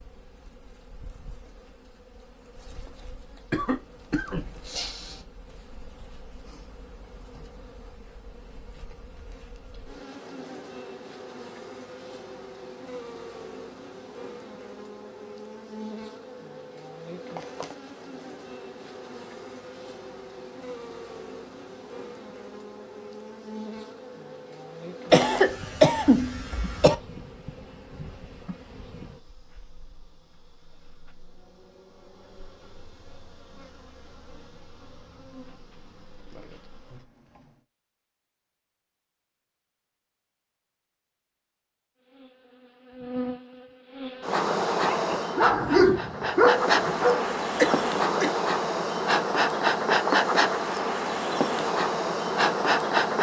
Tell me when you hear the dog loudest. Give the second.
46 s.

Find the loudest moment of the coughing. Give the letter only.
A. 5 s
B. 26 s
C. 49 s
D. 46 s
B.